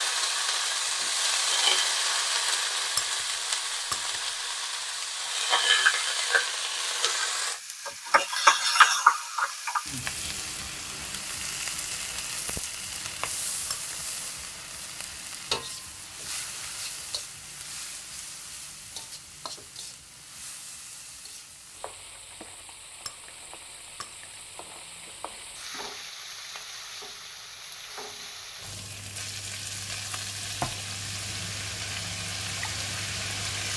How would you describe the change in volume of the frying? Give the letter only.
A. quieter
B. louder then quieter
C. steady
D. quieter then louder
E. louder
D.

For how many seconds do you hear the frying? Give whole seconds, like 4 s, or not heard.
34 s.